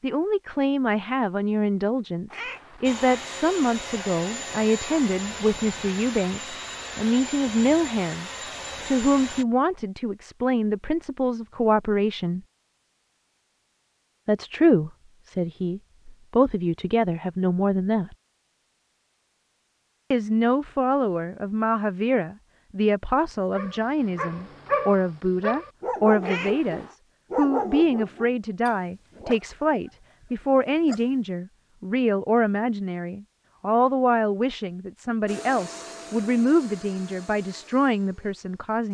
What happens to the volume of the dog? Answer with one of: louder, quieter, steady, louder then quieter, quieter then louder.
quieter.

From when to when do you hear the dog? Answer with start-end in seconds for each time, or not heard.
23.6-31.1.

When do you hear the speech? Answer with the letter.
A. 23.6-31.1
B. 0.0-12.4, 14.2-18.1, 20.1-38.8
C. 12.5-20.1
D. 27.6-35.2
B.